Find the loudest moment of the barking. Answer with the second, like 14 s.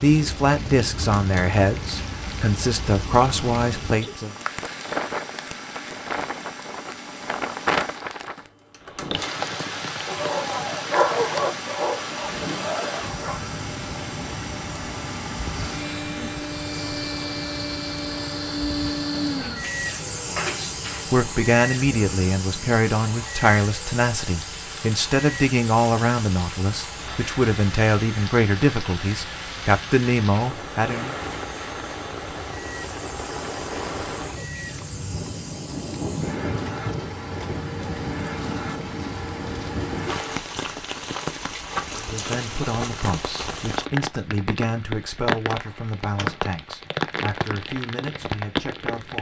11 s.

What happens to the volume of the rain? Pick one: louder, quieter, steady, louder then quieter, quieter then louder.
quieter then louder.